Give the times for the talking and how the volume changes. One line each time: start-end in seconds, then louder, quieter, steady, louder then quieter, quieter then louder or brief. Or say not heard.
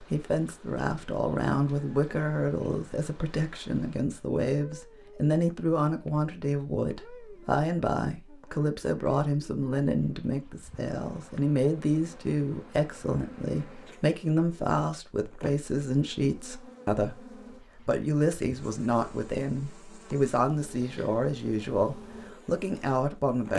0.0-23.5 steady.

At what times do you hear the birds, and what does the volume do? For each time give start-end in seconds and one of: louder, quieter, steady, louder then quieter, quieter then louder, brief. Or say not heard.
not heard.